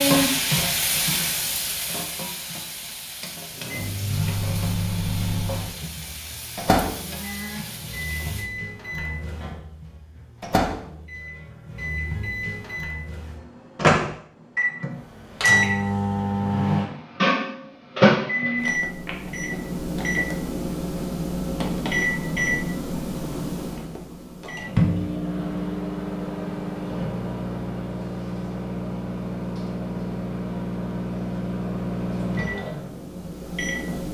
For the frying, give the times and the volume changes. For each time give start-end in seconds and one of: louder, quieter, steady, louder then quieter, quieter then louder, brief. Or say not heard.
0.0-8.5 quieter.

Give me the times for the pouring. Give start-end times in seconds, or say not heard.
not heard.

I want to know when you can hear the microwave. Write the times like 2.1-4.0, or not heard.
3.5-34.0.